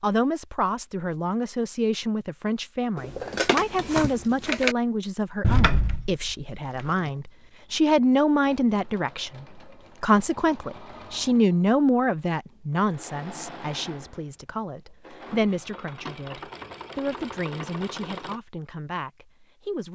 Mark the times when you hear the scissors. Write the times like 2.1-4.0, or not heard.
3.0-4.8.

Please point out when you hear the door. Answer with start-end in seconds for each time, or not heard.
5.4-6.9.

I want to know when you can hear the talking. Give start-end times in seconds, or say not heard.
0.0-19.8.